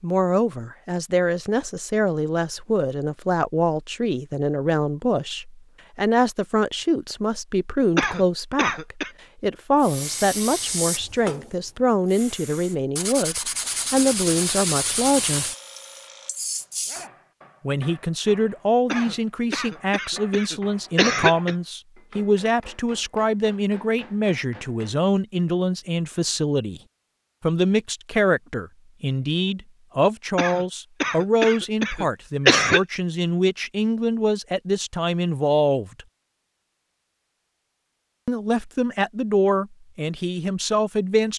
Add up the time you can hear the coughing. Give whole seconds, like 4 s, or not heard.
6 s.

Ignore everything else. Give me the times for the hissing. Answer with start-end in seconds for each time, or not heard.
9.8-17.1.